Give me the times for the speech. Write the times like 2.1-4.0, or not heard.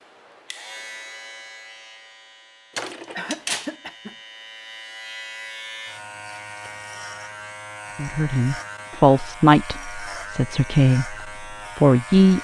8.0-12.3.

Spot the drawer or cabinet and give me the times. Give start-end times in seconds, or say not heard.
2.7-3.8.